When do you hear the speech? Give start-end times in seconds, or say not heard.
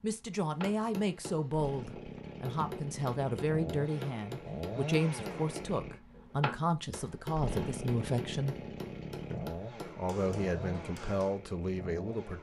0.0-8.6, 9.3-12.3.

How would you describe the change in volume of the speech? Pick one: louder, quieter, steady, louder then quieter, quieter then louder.
steady.